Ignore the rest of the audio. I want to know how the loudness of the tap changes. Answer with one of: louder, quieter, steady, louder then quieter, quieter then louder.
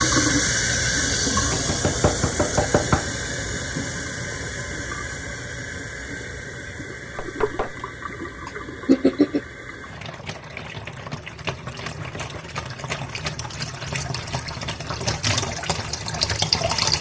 quieter then louder.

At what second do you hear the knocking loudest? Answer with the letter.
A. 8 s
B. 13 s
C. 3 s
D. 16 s
C.